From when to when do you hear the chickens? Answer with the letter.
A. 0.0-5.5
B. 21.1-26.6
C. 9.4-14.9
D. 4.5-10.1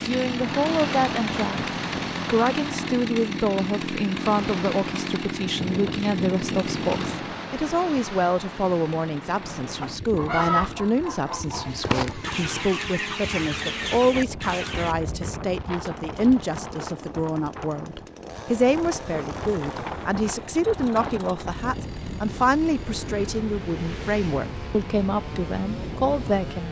C.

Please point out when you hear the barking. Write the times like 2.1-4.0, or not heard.
not heard.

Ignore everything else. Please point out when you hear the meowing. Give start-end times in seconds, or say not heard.
not heard.